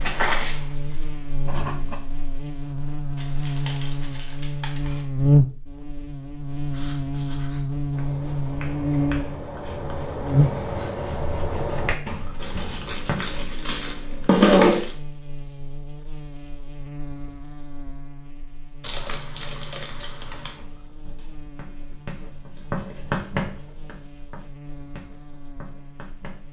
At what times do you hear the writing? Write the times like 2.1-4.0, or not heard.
0.0-1.9, 6.7-13.5, 20.6-26.4.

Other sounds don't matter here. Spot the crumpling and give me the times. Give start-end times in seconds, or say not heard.
3.1-5.0, 12.4-14.9, 18.8-20.6.